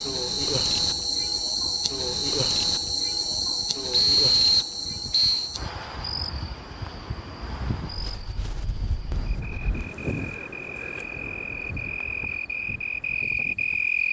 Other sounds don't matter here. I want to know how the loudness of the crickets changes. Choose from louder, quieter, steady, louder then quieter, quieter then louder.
quieter then louder.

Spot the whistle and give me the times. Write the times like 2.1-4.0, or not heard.
3.9-5.5.